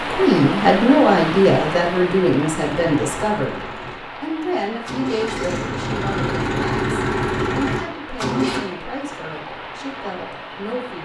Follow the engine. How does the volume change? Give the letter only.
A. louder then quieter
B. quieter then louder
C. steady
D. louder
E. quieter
D.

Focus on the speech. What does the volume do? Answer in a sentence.
The loudness of the speech goes down.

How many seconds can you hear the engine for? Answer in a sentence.
You can hear the engine for 6 seconds altogether.